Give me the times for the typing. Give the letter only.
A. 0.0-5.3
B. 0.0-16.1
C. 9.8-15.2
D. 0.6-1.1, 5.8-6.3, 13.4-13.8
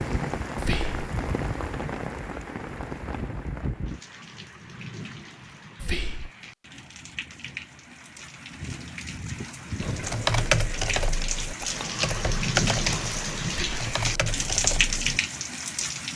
C.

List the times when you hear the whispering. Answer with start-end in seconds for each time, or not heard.
0.6-1.1, 5.8-6.3, 13.4-13.8.